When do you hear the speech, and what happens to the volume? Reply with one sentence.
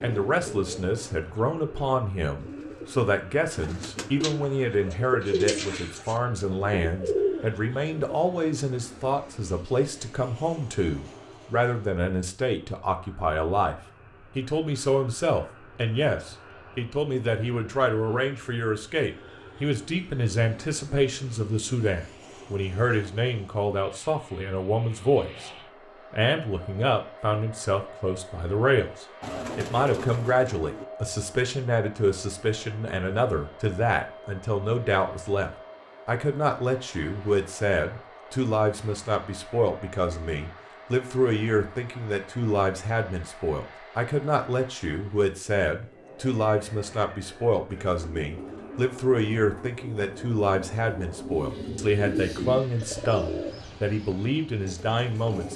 You can hear the speech from 0.0 to 25.5 s, at a steady volume; and from 26.1 to 55.5 s, at a steady volume.